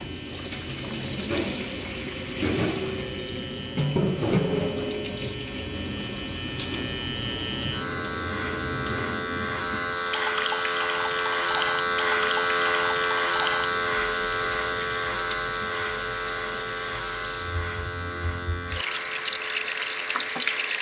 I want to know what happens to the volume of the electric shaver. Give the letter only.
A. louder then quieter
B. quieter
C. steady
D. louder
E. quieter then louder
A.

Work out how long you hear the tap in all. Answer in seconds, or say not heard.
21 s.